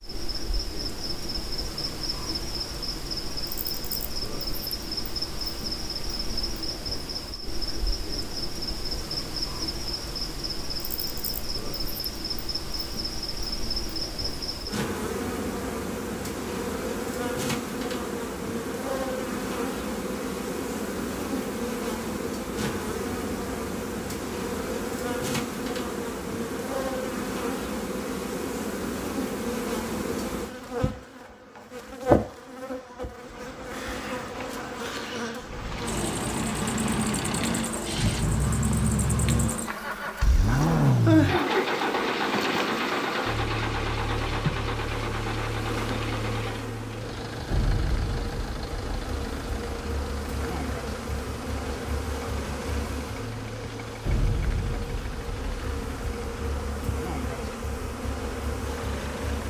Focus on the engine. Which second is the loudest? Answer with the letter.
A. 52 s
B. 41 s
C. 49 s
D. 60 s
B.